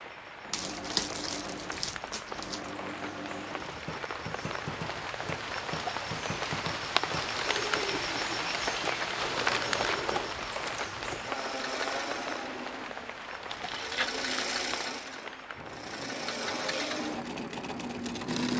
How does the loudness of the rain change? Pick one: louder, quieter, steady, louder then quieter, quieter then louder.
louder then quieter.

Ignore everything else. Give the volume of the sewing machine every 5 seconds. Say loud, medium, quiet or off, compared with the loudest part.
medium, medium, loud, loud.